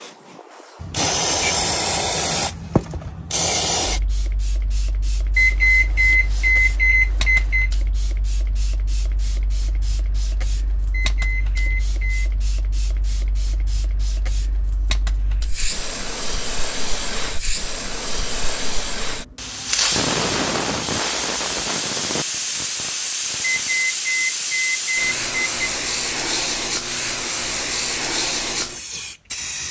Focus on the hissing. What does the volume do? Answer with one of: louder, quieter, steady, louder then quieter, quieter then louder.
quieter then louder.